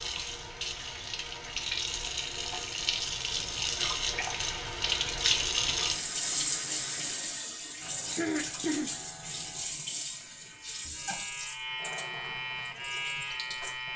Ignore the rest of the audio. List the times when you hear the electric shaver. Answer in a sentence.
You can hear the electric shaver from 7.8 to 13.9 s.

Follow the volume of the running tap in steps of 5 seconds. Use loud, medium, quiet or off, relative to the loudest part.
loud, loud, medium.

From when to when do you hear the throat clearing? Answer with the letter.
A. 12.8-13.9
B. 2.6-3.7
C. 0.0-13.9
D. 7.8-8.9
D.